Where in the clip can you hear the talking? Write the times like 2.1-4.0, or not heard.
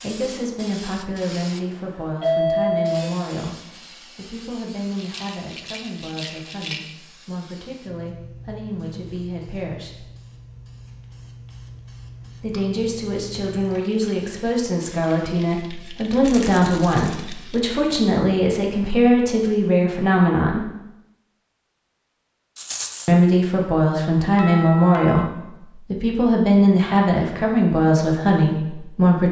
0.0-10.1, 12.3-20.7, 23.1-29.2.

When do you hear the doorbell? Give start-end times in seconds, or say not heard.
2.2-3.1, 24.4-25.3.